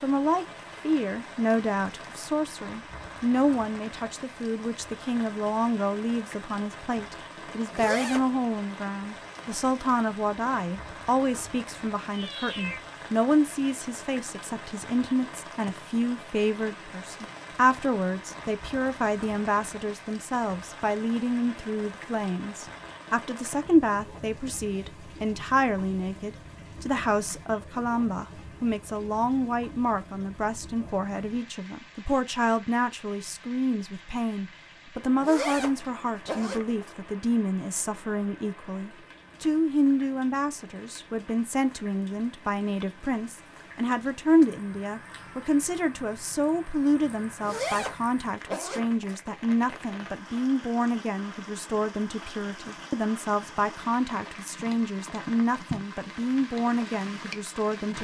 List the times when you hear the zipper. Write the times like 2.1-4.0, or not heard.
7.5-8.2, 35.1-37.0, 47.2-49.1.